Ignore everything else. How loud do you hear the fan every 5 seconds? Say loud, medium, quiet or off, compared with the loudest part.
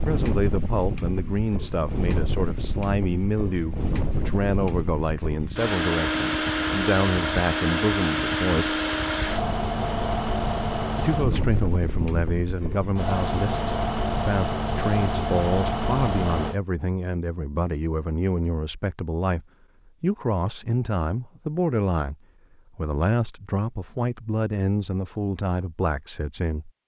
medium, loud, loud, loud, off, off.